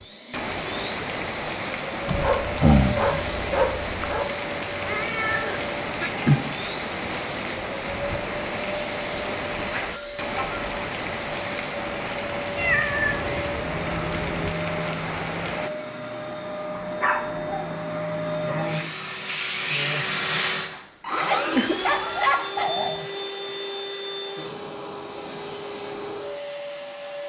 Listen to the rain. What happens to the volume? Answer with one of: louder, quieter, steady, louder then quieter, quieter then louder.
steady.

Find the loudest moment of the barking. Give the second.
3 s.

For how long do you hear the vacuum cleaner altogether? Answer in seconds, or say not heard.
27 s.